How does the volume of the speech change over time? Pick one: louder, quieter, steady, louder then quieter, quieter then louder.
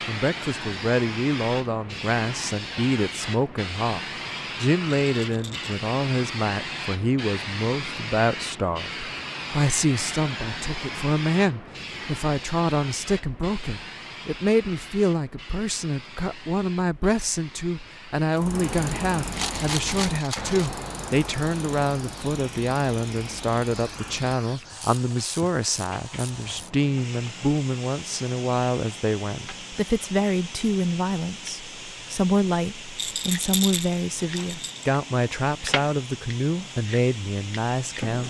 steady.